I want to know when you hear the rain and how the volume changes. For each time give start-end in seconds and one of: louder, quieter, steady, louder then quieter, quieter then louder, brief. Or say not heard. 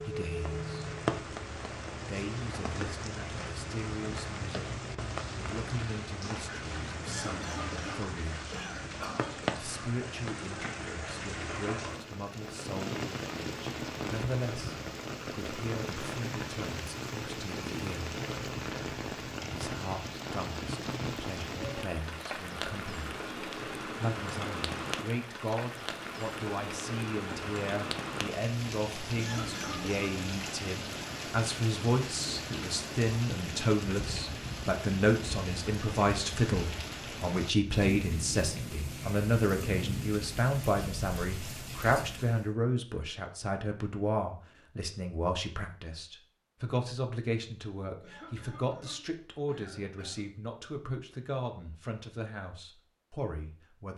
0.0-42.5 steady.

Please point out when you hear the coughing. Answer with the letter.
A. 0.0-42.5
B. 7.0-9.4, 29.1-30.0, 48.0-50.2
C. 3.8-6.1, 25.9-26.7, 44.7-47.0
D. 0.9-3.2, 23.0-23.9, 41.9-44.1
B.